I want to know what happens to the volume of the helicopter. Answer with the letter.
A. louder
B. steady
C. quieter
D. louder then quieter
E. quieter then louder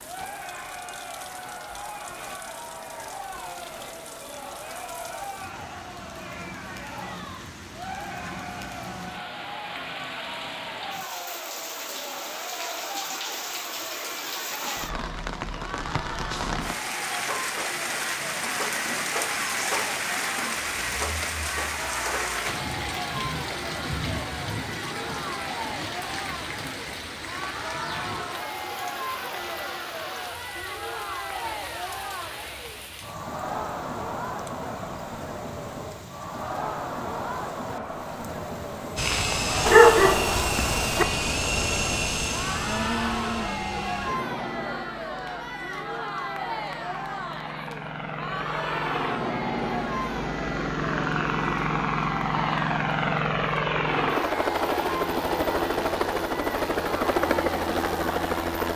E.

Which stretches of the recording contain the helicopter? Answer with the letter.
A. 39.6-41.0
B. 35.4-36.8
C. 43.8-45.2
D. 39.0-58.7
D.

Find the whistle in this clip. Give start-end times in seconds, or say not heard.
not heard.